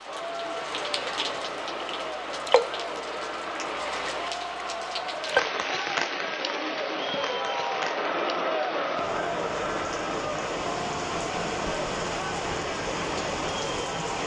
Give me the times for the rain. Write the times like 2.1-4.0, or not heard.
0.0-14.2.